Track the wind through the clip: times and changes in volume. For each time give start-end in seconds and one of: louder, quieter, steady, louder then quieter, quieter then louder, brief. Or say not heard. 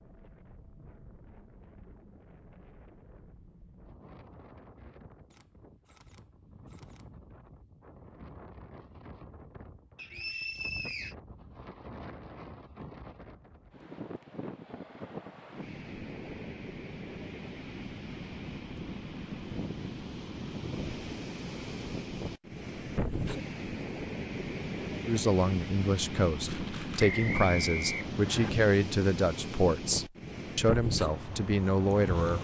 0.0-32.3 louder.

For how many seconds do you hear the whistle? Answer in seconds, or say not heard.
3 s.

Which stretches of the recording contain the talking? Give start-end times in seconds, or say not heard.
25.1-32.3.